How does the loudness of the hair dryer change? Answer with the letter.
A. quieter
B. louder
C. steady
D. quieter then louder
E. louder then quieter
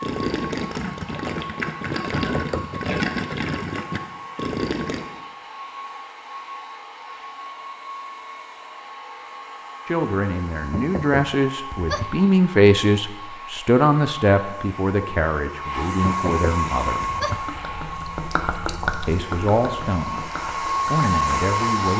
B.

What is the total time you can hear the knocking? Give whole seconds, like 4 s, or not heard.
4 s.